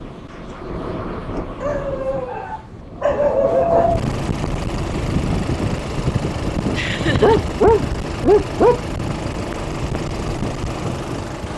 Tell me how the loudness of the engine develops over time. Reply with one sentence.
The loudness of the engine stays about the same.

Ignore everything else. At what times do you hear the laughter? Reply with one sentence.
You can hear the laughter from 6.7 to 7.4 s.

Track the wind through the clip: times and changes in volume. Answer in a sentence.
You can hear the wind from 0.0 to 11.5 s, getting louder then quieter.